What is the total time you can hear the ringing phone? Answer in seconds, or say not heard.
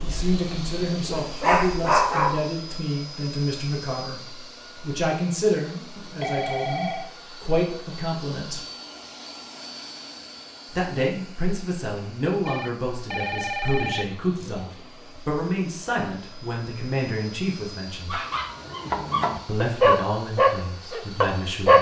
3 s.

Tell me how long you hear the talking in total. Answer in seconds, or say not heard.
18 s.